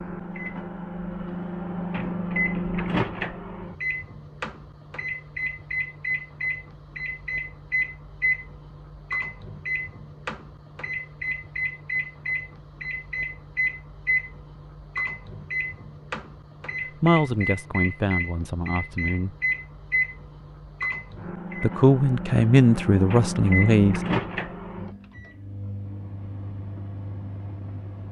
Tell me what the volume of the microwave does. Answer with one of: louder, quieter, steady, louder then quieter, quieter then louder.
steady.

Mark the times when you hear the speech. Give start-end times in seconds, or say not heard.
17.0-19.4, 21.6-24.0.